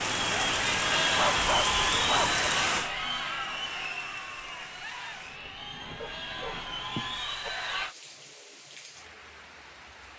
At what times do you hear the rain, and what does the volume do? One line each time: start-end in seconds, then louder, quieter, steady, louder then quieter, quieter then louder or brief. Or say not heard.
0.0-10.1 quieter.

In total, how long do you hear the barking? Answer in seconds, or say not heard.
3 s.